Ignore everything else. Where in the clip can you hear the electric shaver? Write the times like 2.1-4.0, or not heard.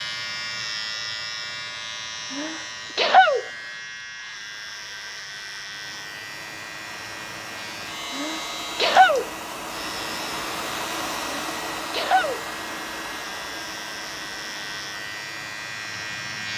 0.0-16.5.